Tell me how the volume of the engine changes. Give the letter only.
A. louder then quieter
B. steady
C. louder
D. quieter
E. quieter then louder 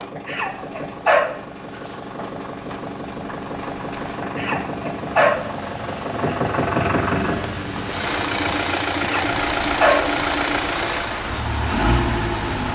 C.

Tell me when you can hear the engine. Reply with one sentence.
You can hear the engine from 0.0 to 12.6 s.